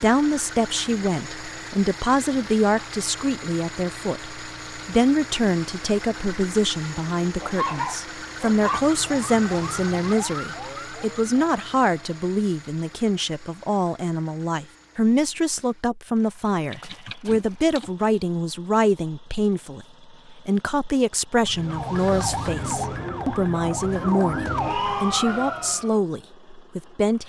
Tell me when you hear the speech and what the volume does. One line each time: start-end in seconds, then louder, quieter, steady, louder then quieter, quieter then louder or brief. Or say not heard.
0.0-27.2 steady.